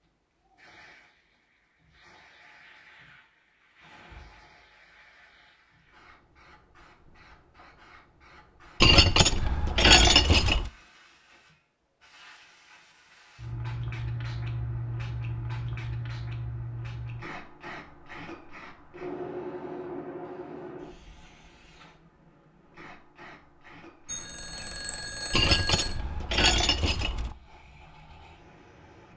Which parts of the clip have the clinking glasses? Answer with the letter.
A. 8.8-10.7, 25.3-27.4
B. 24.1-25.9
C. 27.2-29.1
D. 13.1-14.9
A.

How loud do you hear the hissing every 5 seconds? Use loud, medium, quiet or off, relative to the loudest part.
quiet, quiet, loud, loud, medium, quiet.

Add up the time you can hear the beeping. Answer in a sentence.
The beeping can be heard for 2 seconds in total.